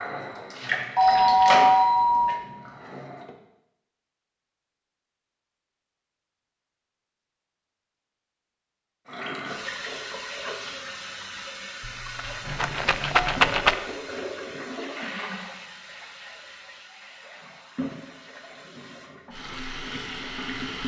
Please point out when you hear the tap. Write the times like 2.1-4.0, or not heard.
0.0-3.4, 9.1-20.8.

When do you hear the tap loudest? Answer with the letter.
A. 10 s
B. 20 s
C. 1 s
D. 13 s
C.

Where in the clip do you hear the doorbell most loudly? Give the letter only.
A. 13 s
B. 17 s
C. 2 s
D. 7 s
C.